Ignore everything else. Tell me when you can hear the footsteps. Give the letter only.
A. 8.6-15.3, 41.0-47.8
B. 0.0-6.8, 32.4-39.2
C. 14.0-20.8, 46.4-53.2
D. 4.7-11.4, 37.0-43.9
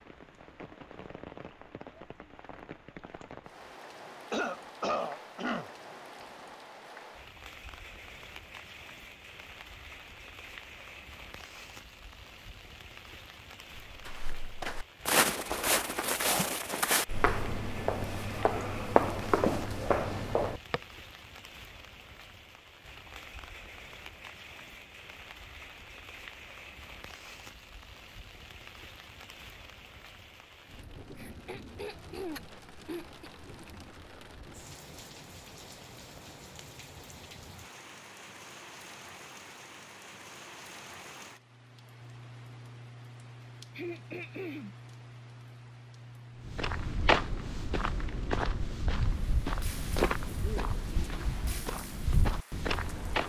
C.